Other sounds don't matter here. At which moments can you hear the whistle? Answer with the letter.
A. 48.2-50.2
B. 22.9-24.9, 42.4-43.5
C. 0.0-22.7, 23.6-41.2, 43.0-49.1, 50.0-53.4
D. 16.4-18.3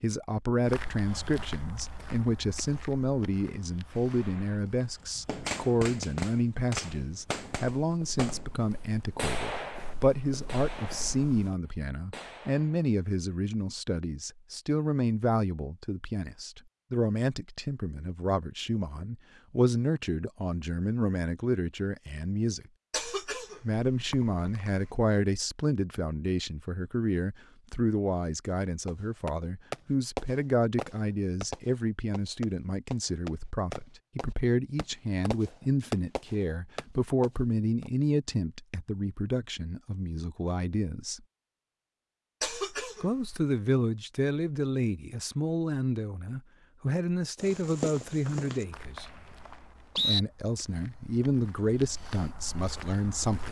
A.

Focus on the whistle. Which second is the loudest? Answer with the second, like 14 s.
50 s.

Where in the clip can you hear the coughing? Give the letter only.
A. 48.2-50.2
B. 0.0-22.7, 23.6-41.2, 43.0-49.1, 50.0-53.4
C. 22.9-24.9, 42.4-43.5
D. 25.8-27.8
C.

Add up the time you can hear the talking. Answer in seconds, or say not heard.
50 s.